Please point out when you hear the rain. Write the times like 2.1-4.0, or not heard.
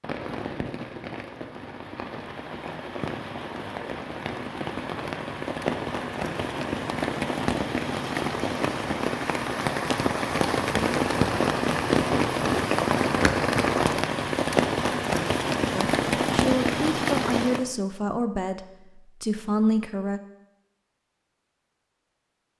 0.0-17.6.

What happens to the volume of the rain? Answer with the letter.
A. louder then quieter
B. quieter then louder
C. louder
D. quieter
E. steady
C.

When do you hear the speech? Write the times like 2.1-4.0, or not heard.
15.7-20.2.